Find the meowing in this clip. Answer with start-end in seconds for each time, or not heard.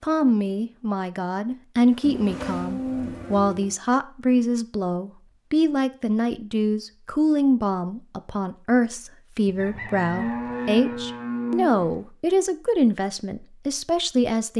not heard.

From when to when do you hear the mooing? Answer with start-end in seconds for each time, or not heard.
2.0-3.8, 9.4-12.1.